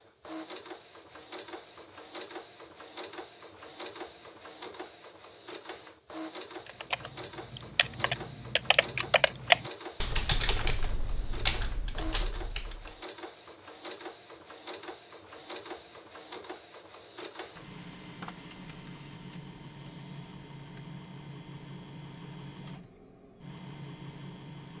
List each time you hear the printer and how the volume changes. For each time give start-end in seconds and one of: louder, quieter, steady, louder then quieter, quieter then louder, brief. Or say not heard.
0.0-24.7 steady.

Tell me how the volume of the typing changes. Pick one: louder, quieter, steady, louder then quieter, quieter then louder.
louder then quieter.